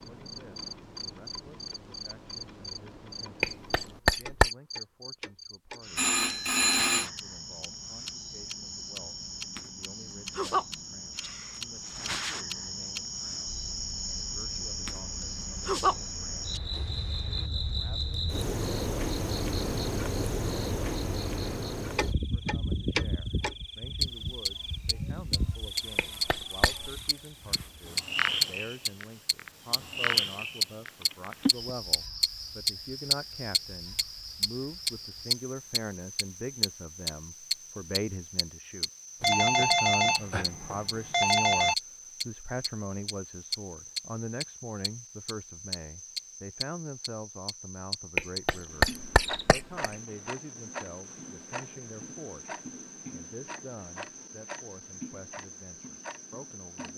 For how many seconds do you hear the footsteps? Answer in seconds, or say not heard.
not heard.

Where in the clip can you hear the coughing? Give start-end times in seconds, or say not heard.
3.4-4.5, 25.9-26.9, 48.1-49.9.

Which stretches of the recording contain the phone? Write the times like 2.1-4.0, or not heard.
6.0-7.1, 31.0-31.7, 39.2-41.8.